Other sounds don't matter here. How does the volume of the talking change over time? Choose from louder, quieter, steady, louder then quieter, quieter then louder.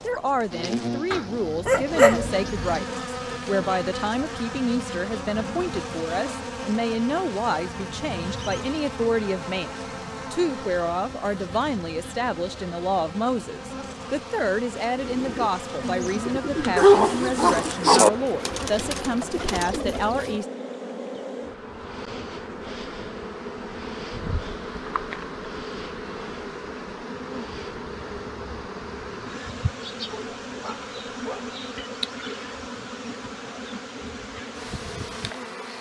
steady.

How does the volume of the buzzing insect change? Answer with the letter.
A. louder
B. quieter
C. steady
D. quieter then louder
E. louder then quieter
C.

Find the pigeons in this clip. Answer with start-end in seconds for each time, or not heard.
14.9-20.4.